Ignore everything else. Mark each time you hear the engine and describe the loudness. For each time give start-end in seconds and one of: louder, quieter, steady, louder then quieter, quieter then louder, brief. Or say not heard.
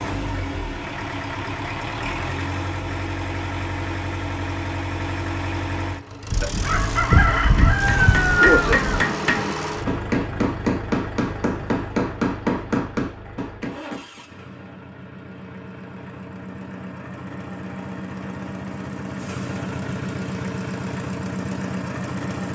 0.0-22.5 quieter then louder.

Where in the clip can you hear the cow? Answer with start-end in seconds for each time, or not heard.
not heard.